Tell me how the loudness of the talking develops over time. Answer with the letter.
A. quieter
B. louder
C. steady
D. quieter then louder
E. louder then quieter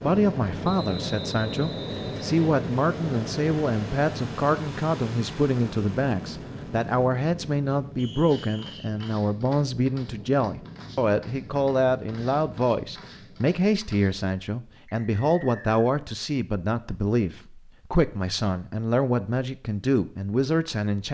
C.